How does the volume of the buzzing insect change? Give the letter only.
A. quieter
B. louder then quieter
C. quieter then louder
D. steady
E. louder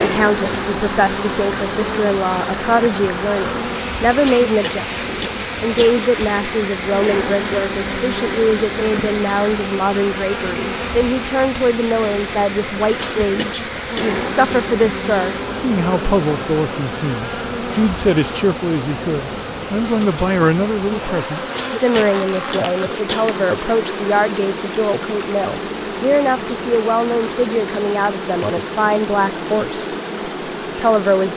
D.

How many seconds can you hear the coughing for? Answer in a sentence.
The coughing can be heard for 5 seconds in total.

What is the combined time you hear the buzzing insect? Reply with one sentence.
The buzzing insect can be heard for 31 seconds in total.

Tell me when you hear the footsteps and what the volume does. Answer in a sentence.
The footsteps can't be heard in this clip.